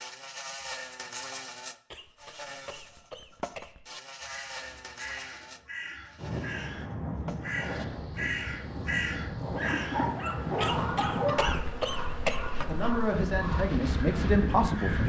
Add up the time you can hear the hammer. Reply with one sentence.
You can't hear the hammer here.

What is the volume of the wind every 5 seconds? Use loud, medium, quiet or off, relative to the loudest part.
off, loud, loud.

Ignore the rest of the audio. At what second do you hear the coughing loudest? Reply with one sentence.
The loudest moment of the coughing is at 12 seconds.